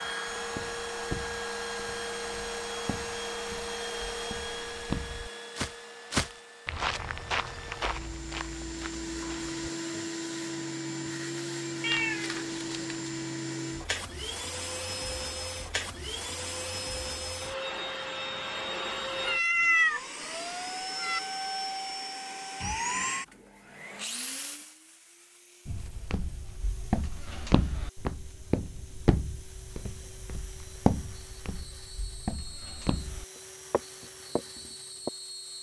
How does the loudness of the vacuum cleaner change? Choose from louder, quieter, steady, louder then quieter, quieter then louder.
quieter.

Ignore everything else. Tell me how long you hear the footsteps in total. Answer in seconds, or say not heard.
19 s.